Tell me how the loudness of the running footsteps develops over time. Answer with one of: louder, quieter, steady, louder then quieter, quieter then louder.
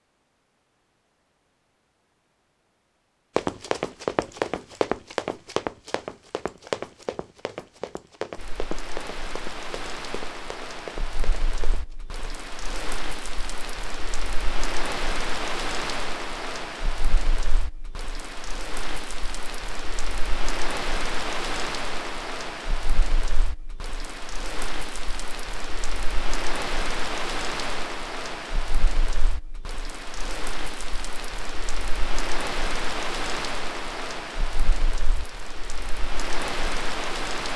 quieter.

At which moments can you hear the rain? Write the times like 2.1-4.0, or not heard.
8.3-37.5.